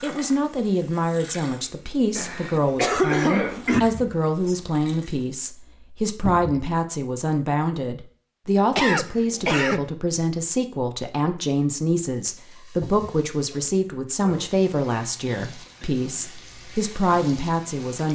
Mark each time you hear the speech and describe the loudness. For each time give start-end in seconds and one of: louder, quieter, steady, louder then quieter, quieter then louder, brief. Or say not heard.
0.0-18.1 steady.